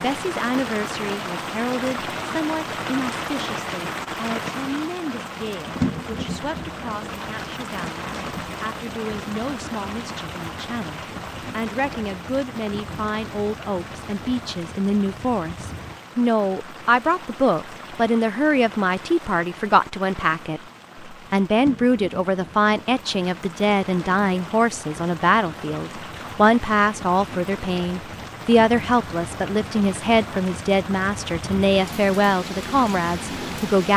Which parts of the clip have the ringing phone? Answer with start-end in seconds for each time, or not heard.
not heard.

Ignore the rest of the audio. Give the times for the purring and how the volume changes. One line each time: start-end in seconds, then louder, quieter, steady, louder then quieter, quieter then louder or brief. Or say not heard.
not heard.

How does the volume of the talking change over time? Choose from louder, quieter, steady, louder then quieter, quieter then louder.
louder.